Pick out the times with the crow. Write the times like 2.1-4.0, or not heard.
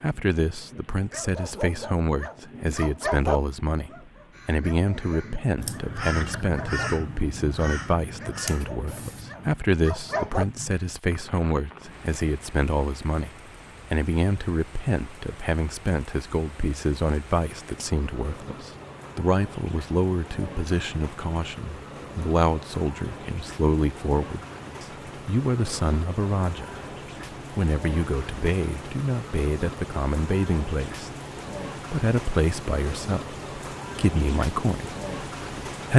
4.3-9.5.